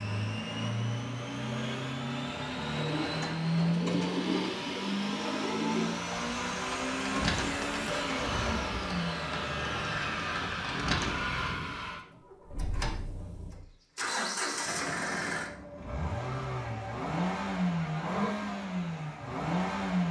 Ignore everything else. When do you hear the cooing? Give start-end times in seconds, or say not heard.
2.8-11.3.